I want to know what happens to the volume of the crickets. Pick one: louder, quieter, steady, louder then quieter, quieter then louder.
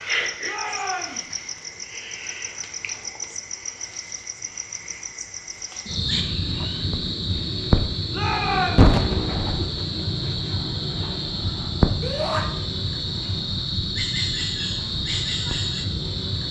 louder.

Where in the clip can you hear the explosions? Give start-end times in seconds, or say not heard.
8.8-9.7.